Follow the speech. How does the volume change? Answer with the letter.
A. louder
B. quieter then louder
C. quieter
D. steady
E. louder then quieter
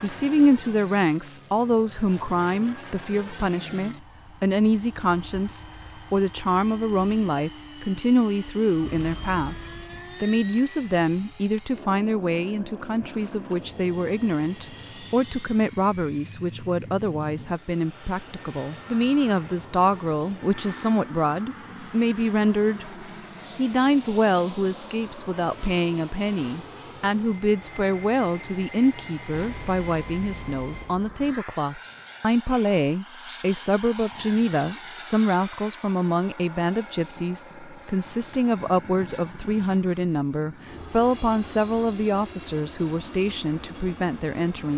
D.